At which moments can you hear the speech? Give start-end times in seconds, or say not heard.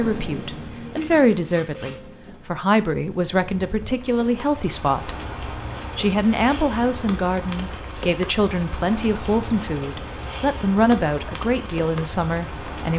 0.0-5.2, 6.0-12.9.